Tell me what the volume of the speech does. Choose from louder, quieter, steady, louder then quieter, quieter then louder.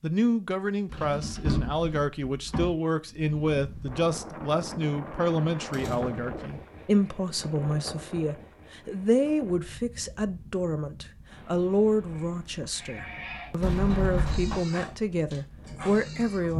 steady.